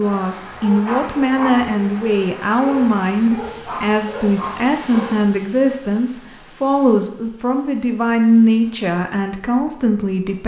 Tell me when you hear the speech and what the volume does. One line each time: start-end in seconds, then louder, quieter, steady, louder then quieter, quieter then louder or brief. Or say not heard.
0.0-10.4 steady.